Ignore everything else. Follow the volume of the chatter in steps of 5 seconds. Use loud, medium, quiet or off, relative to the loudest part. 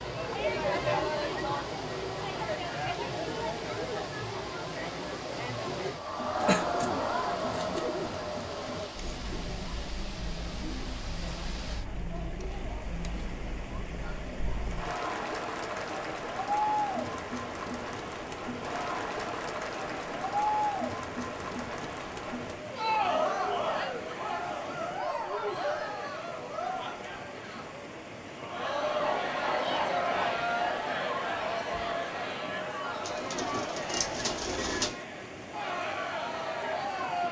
loud, loud, medium, loud, loud, loud, loud, loud.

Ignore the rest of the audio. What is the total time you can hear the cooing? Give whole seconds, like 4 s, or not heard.
4 s.